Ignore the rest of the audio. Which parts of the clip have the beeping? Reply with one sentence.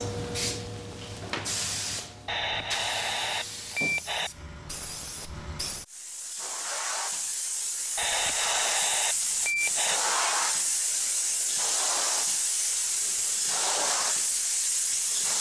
The beeping can be heard from 2.2 to 4.3 s and from 8.0 to 10.0 s.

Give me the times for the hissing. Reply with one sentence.
The hissing can be heard from 0.0 to 15.3 s.